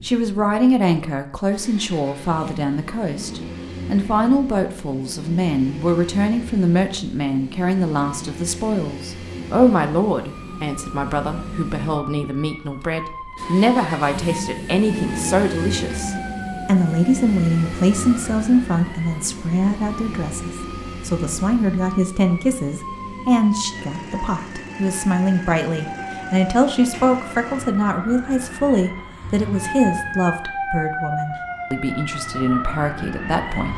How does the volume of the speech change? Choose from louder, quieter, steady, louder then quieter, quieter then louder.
steady.